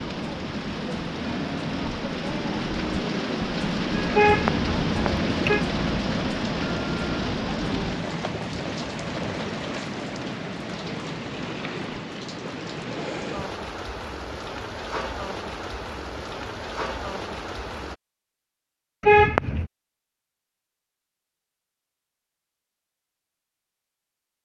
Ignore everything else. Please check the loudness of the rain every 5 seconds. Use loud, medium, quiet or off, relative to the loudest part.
loud, loud, medium, medium, off.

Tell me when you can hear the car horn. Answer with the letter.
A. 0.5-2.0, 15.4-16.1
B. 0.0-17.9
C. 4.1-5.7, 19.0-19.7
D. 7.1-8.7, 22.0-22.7
C.